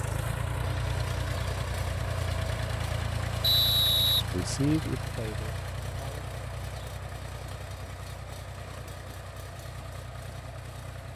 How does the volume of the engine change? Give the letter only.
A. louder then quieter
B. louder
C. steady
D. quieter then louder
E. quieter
E.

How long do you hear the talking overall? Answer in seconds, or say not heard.
2 s.